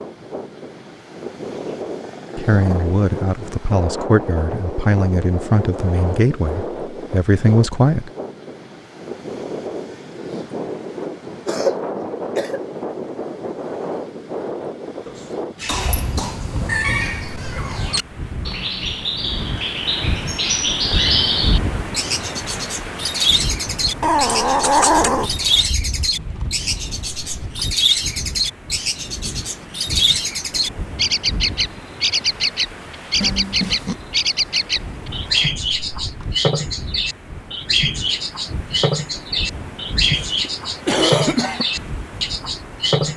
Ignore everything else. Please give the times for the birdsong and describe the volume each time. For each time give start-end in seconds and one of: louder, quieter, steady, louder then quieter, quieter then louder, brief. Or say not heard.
15.6-43.1 steady.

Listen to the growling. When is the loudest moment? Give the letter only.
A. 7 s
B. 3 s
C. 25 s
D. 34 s
C.